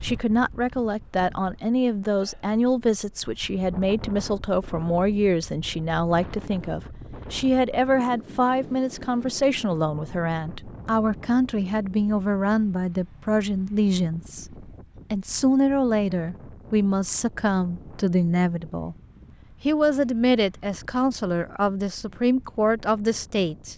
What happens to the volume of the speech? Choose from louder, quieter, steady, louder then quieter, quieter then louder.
steady.